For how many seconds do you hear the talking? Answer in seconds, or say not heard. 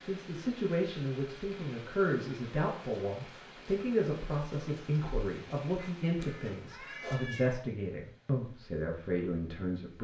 10 s.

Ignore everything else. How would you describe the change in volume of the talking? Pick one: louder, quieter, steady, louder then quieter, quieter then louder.
steady.